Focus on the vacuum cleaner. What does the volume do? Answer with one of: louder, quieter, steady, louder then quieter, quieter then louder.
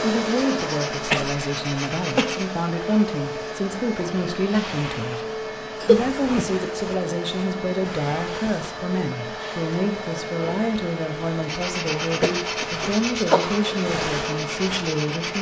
steady.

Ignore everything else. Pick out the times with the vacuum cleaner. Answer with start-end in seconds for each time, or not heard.
0.0-15.3.